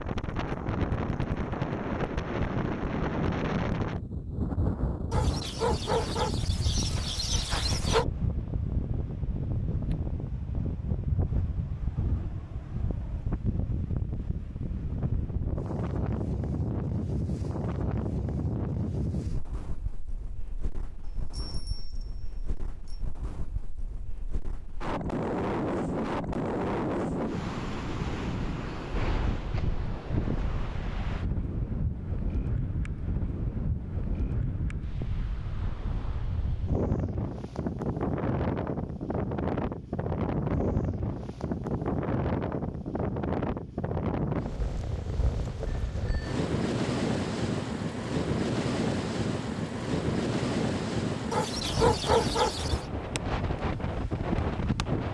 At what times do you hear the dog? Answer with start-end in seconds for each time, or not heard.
5.1-8.1, 51.3-52.9.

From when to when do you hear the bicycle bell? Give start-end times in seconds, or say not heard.
21.0-23.0, 45.7-46.4.